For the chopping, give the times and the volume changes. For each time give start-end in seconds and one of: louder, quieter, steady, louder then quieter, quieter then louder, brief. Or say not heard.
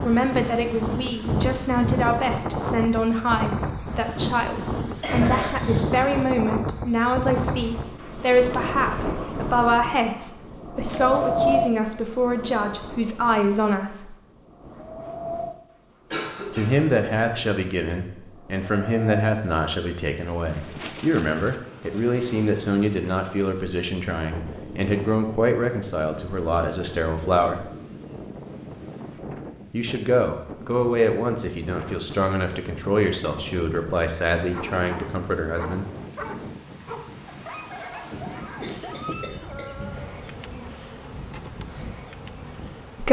not heard.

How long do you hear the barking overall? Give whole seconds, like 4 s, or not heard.
6 s.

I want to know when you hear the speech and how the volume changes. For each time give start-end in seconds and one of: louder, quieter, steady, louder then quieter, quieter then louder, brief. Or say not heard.
0.0-14.2 steady
16.5-27.6 steady
29.7-35.9 quieter.